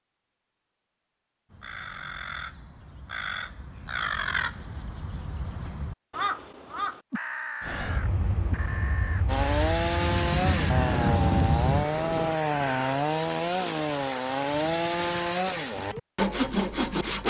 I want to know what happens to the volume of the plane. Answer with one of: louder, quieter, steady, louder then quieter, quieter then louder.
louder.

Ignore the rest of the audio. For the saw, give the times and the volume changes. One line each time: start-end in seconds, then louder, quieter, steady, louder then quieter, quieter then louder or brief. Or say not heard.
9.2-17.2 steady.